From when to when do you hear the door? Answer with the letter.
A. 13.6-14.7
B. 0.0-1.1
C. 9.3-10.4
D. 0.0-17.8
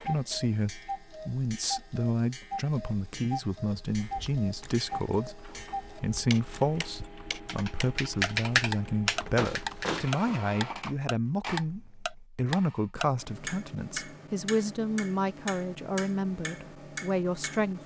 C.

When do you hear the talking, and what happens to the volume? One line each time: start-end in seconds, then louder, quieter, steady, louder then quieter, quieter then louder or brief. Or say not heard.
0.0-17.8 steady.